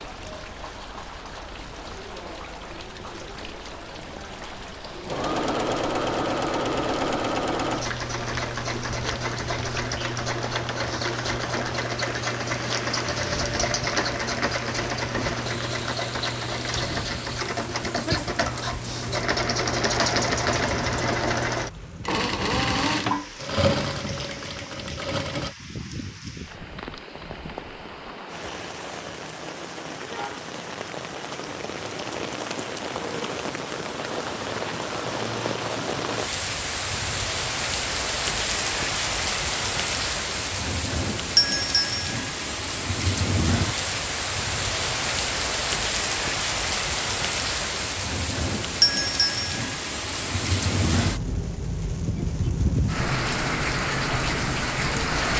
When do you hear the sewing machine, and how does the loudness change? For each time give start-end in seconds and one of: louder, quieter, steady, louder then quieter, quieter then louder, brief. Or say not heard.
5.0-25.6 steady.